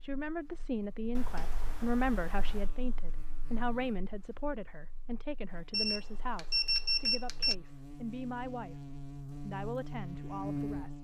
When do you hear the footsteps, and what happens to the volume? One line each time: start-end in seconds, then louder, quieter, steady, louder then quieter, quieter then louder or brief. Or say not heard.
not heard.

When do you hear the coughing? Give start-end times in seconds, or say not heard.
not heard.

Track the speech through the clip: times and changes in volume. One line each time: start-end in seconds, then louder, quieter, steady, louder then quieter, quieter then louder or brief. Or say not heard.
0.0-10.9 quieter.